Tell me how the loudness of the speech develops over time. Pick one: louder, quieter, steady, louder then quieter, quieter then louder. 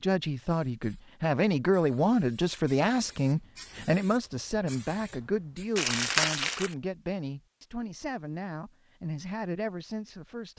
quieter.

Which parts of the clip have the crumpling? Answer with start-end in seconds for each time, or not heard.
5.8-6.8.